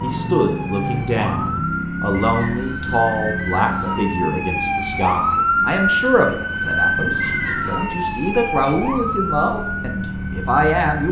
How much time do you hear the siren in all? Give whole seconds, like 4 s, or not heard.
11 s.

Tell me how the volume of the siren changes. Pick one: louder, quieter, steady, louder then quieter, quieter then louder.
louder then quieter.